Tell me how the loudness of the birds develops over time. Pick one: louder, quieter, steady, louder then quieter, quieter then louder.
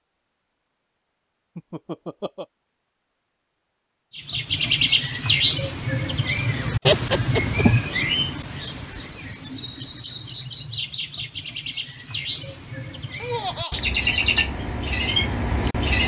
quieter then louder.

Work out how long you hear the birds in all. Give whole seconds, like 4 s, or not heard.
12 s.